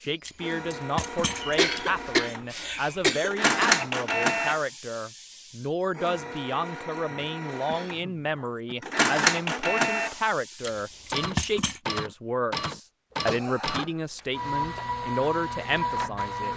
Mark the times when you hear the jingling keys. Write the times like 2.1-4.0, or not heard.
0.2-2.0, 10.6-11.8.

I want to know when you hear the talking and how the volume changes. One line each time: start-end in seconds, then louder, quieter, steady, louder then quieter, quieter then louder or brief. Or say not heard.
0.0-16.5 steady.